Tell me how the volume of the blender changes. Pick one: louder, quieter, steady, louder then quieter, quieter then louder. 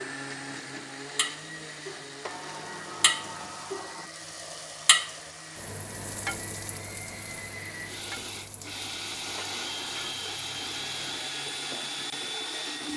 quieter then louder.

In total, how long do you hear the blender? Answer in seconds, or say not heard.
13 s.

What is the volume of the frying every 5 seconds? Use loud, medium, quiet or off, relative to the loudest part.
loud, medium, quiet.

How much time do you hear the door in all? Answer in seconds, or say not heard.
3 s.